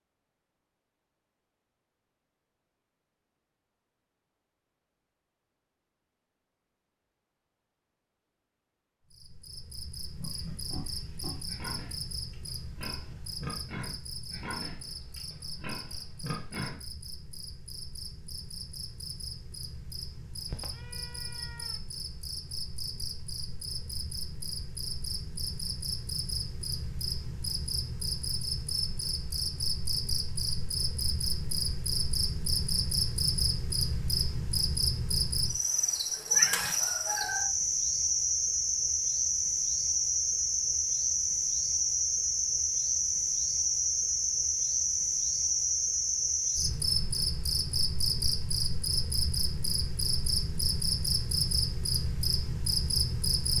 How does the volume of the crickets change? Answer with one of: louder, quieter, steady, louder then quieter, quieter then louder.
louder.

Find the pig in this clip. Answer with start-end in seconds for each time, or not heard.
10.2-16.8.